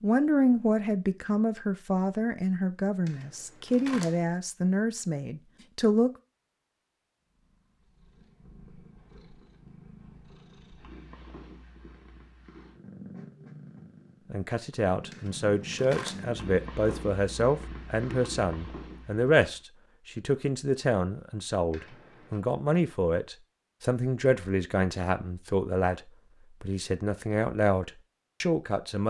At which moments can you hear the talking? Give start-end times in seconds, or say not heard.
0.0-6.1, 14.3-29.0.